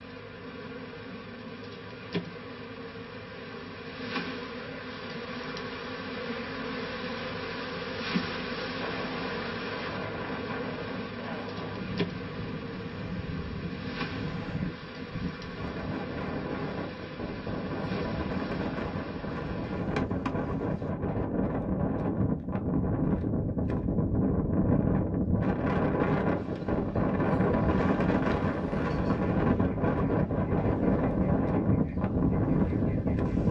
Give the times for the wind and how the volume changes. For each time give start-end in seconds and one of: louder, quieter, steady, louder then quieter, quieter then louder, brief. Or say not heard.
8.8-33.4 louder.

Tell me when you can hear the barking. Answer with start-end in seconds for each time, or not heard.
not heard.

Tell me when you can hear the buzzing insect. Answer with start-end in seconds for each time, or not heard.
0.0-20.9, 26.3-33.4.